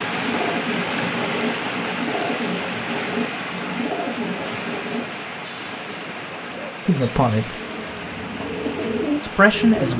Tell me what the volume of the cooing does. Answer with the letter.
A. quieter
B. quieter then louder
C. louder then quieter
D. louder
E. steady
B.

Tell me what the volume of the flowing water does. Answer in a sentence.
The loudness of the flowing water goes down.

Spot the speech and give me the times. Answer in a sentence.
You can hear the speech from 6.8 to 7.6 s and from 9.2 to 9.9 s.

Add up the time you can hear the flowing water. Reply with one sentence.
You can hear the flowing water for 10 seconds altogether.